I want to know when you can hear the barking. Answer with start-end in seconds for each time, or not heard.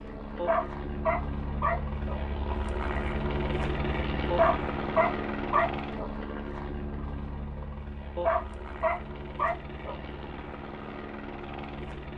0.3-2.2, 4.3-6.1, 8.2-10.1.